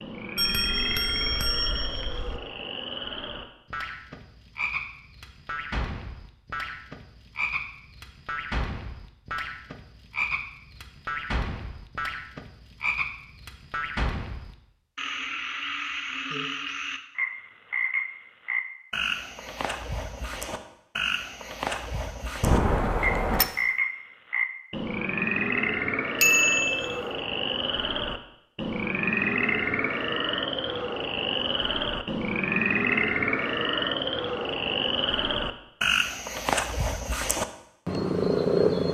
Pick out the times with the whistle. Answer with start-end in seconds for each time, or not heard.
not heard.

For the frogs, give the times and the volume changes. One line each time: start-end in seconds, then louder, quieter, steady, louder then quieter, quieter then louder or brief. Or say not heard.
0.0-38.8 louder.